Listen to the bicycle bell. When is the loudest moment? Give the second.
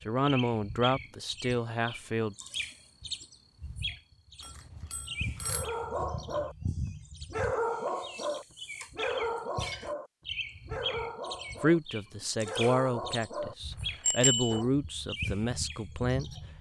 14 s.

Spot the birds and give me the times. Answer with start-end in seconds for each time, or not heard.
0.0-16.5.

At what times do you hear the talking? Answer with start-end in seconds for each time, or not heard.
0.1-2.4, 11.6-16.3.